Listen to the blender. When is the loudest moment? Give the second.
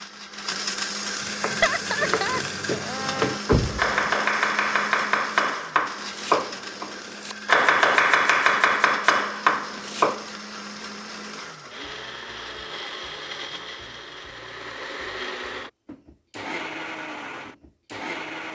1 s.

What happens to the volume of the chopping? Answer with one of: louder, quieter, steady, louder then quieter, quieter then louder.
louder.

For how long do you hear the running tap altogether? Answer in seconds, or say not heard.
not heard.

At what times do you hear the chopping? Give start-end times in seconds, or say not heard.
1.4-10.2.